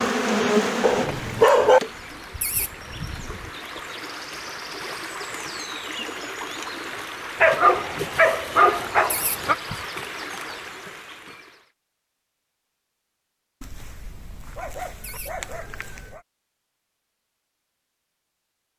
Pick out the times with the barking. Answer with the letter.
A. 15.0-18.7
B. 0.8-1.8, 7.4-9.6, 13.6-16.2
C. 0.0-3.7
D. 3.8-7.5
B.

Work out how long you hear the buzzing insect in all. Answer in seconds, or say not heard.
4 s.